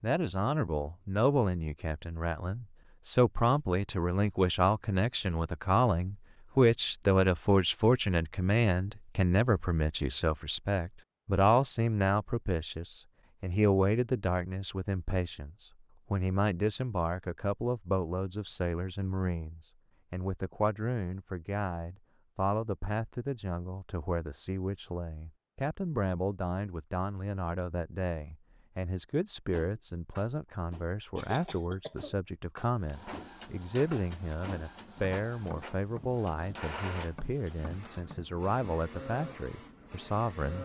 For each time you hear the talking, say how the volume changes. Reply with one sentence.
The talking can be heard from 0.0 to 40.6 s, getting quieter.